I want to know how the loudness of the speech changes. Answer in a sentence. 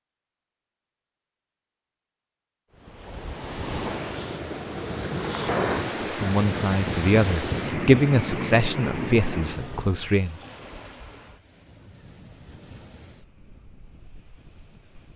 The volume of the speech goes up, then down.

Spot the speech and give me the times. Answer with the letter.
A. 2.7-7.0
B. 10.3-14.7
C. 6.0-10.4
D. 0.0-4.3
C.